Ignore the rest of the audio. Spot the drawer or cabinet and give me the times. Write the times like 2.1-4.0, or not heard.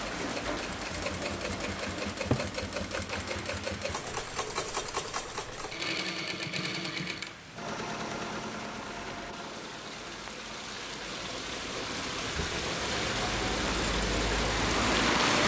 2.1-2.5.